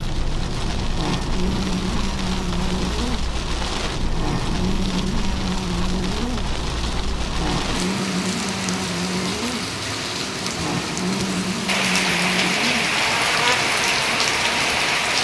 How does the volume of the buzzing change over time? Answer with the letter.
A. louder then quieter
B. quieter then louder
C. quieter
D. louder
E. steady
E.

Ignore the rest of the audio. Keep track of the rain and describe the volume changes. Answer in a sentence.
The volume of the rain goes up.